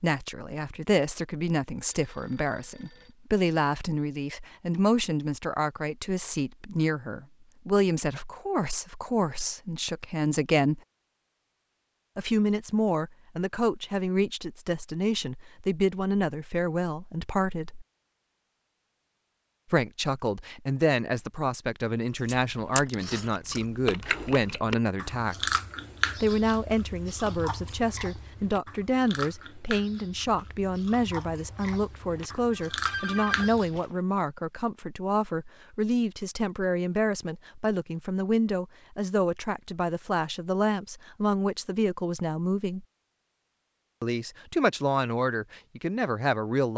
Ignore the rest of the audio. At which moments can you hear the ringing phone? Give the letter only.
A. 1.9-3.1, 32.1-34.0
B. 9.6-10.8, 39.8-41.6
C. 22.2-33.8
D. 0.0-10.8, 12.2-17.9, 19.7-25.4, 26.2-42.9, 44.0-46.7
A.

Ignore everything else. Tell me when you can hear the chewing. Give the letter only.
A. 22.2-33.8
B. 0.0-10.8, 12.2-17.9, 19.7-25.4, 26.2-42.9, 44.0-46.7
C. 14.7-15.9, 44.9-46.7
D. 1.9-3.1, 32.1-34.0
A.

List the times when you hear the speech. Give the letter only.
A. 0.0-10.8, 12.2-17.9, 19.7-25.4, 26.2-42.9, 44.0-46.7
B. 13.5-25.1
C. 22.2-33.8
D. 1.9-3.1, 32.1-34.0
A.